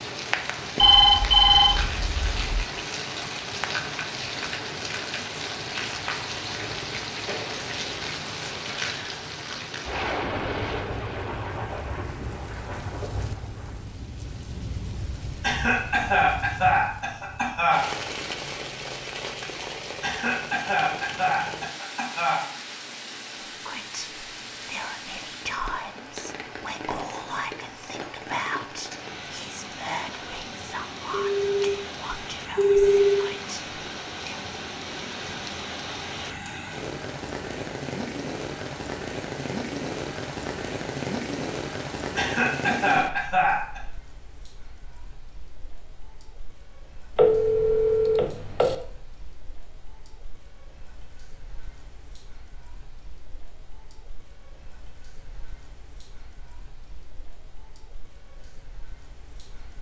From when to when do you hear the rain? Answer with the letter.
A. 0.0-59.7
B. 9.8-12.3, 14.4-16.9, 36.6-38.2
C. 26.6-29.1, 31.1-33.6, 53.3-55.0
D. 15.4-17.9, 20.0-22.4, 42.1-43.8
A.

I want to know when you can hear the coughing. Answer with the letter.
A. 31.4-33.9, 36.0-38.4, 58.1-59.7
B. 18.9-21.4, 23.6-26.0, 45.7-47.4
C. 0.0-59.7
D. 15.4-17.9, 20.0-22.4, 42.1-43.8
D.